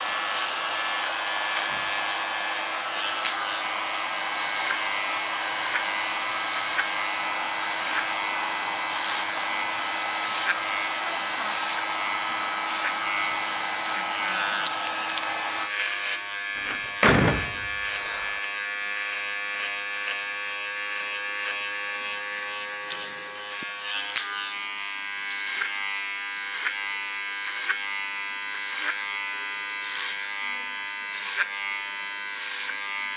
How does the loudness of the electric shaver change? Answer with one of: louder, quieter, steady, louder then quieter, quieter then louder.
steady.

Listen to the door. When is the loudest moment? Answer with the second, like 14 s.
17 s.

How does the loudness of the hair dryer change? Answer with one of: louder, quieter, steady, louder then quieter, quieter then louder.
steady.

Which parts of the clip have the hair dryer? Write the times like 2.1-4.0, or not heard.
0.0-15.7.